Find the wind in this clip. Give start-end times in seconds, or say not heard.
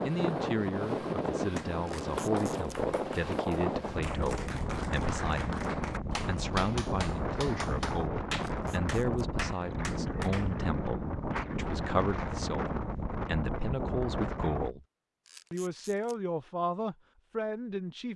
0.0-14.8.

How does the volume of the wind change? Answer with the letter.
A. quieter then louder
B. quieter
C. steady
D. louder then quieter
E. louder
C.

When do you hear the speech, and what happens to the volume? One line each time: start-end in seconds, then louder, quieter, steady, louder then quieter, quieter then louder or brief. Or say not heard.
0.0-14.8 steady
15.5-18.1 brief.